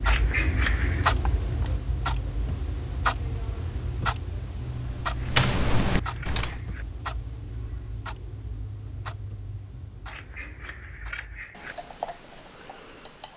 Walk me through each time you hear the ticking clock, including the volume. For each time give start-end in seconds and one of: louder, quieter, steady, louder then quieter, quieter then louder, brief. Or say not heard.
0.0-13.3 quieter.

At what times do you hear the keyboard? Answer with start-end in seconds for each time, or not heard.
4.7-6.5.